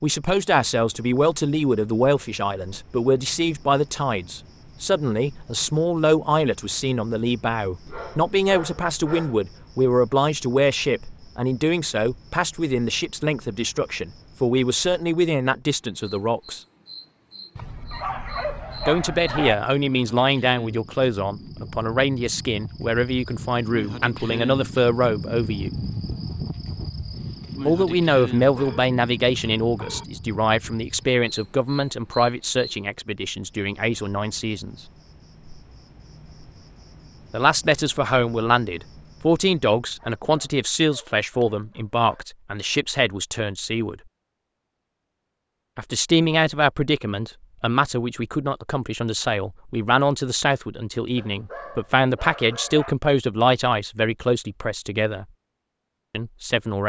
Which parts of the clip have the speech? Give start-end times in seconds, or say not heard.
0.0-16.6, 18.9-25.7, 27.6-34.8, 37.3-44.0, 45.8-55.2, 56.1-56.8.